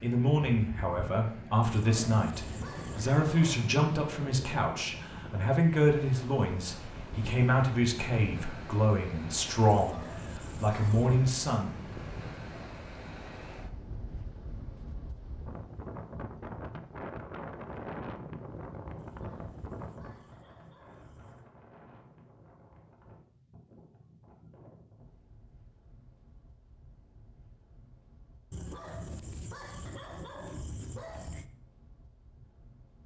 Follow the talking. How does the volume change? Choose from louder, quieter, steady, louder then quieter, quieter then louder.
steady.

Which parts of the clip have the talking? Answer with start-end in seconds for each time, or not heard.
0.0-11.8.